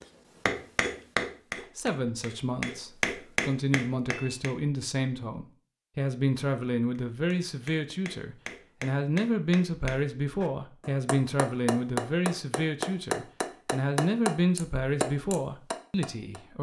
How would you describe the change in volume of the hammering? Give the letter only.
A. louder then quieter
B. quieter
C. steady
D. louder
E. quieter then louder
E.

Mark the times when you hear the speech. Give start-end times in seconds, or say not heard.
1.6-16.5.